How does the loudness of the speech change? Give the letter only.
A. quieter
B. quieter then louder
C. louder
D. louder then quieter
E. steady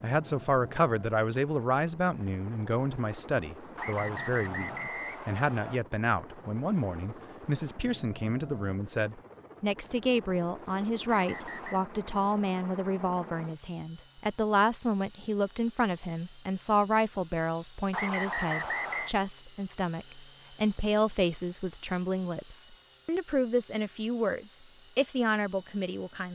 E.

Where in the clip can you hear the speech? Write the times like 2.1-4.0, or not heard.
0.0-26.3.